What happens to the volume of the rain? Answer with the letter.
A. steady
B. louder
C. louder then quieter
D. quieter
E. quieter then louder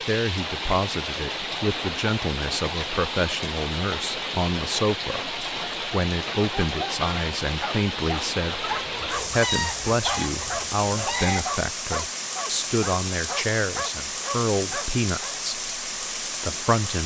A.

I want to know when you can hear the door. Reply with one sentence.
You can't hear the door here.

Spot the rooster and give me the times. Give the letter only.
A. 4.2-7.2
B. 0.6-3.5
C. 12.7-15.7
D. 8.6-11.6
D.